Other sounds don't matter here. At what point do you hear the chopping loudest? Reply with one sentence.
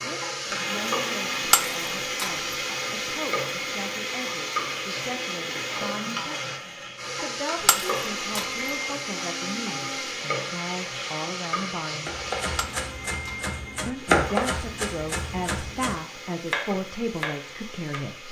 The loudest moment of the chopping is at 14 seconds.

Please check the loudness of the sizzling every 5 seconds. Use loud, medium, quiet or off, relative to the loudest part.
loud, loud, loud, quiet.